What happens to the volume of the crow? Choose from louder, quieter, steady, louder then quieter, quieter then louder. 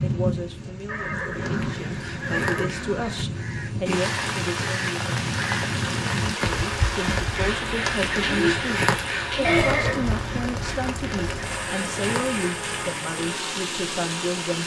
louder then quieter.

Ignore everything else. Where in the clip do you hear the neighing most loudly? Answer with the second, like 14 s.
10 s.